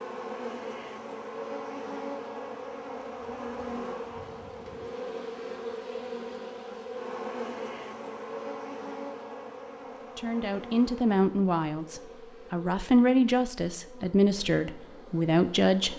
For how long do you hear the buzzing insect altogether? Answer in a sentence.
The buzzing insect can be heard for 16 seconds in total.